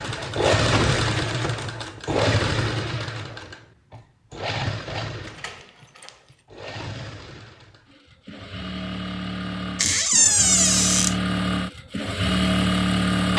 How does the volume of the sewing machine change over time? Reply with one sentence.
The loudness of the sewing machine goes down, then up.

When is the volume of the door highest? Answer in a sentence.
The volume of the door peaks at 10 seconds.